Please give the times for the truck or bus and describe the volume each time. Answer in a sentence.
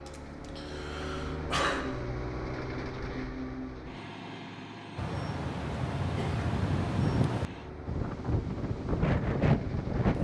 The truck or bus can be heard from 0.0 to 10.1 s, getting quieter.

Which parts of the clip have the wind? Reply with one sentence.
You can hear the wind from 5.0 to 10.1 s.